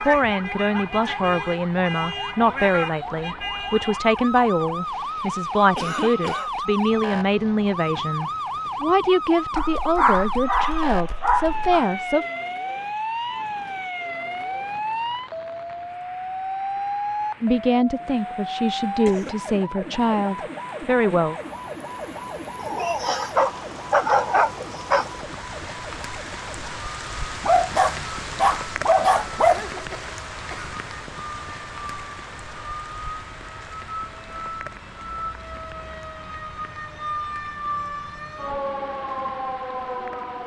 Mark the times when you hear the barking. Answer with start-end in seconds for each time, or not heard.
9.6-11.8, 22.6-25.1, 27.4-29.9.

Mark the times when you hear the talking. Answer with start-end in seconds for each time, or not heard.
0.0-12.2, 17.4-21.4.